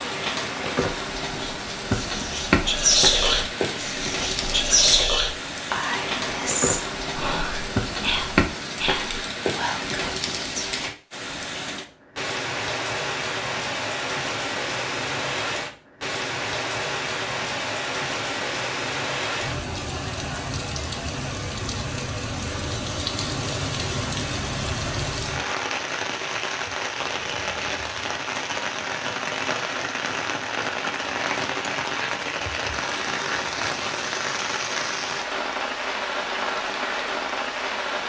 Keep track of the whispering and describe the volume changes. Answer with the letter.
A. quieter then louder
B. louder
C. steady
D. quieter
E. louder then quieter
D.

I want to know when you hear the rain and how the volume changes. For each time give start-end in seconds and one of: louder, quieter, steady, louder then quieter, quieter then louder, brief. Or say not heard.
0.0-38.0 steady.